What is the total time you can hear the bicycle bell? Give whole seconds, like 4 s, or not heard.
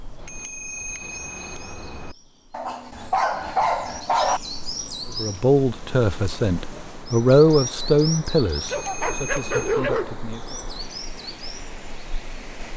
3 s.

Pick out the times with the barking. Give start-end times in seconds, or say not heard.
2.5-4.4, 8.7-10.2.